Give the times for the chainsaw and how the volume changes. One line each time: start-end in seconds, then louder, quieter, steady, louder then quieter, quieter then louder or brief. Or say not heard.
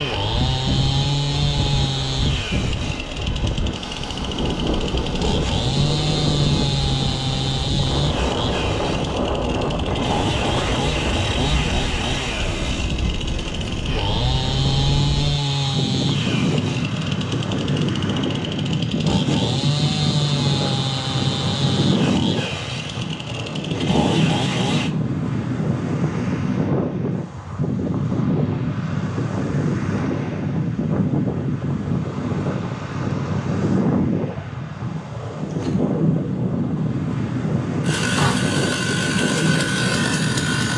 0.0-24.9 steady
37.8-40.7 brief.